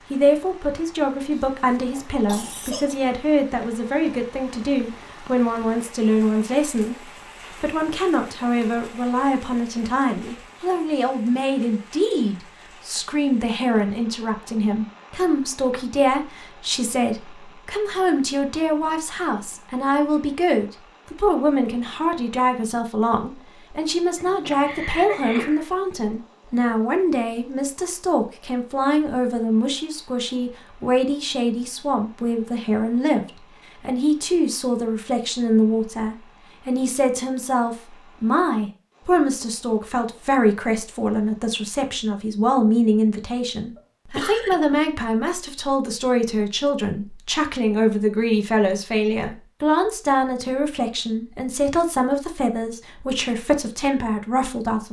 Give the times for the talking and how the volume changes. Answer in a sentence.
You can hear the talking from 0.1 to 54.8 s, at a steady volume.